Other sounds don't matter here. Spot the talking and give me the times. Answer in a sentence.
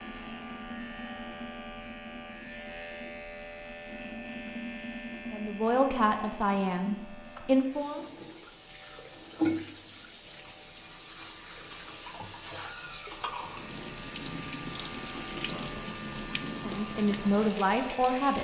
You can hear the talking from 5.3 to 8.0 s and from 16.5 to 18.4 s.